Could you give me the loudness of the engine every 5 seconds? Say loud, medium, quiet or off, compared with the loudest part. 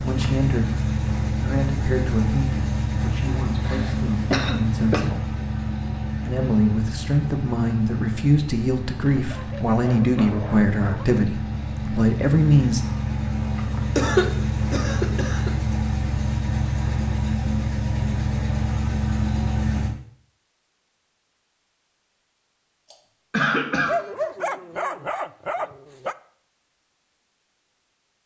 loud, medium, loud, loud, off, off.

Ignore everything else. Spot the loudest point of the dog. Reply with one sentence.
The volume of the dog peaks at 24 seconds.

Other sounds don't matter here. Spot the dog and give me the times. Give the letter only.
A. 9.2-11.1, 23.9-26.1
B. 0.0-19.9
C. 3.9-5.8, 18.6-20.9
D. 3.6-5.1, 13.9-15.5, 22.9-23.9
A.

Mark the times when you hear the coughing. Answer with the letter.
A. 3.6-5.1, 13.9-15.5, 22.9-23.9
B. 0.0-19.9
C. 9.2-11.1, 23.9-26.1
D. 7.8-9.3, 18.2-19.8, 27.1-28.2
A.